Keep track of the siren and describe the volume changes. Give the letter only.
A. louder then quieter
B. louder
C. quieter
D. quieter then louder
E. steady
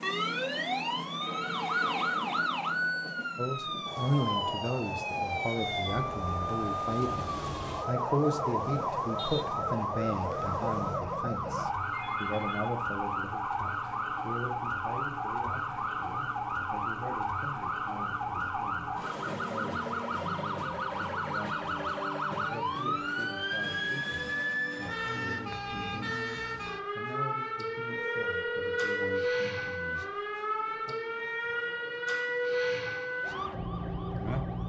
E.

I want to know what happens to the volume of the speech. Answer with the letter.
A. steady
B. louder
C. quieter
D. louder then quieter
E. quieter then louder
C.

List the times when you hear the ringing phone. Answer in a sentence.
The ringing phone can be heard from 0.9 to 2.2 s, from 11.9 to 12.8 s and from 27.9 to 29.2 s.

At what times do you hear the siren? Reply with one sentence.
The siren can be heard from 0.0 to 34.6 s.